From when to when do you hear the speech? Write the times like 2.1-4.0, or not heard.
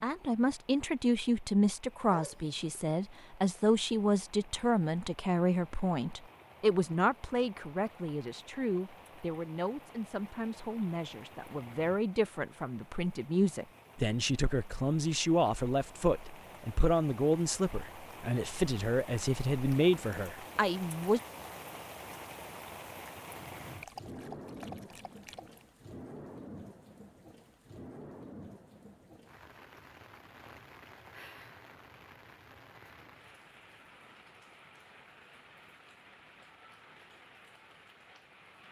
0.0-21.2.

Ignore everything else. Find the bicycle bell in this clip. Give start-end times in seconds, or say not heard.
not heard.